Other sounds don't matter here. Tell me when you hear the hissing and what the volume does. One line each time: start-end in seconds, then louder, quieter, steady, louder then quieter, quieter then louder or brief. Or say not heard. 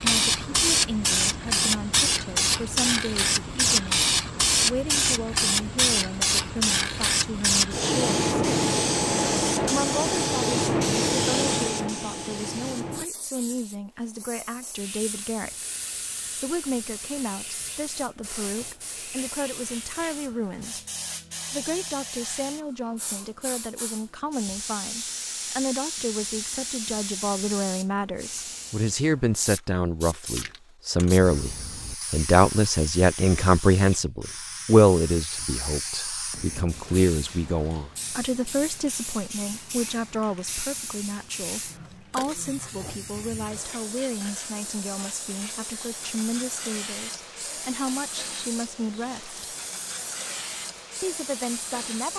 0.0-52.1 quieter.